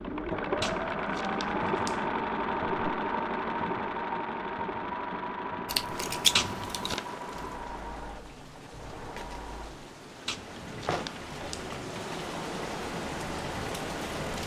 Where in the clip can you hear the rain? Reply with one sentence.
The rain can be heard from 5.8 to 14.4 s.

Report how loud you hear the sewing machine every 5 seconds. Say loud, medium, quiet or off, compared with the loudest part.
loud, medium, quiet.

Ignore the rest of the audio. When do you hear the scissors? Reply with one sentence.
The scissors can be heard from 5.7 to 7.0 s.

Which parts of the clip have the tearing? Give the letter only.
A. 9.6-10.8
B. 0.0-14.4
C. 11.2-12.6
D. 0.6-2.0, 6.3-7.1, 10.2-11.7
D.